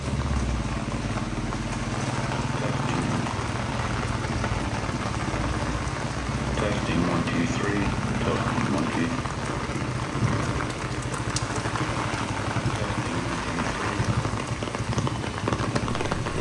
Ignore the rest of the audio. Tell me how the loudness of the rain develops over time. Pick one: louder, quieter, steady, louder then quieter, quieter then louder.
steady.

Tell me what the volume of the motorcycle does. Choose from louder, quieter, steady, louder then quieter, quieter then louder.
steady.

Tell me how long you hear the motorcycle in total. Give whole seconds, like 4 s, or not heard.
16 s.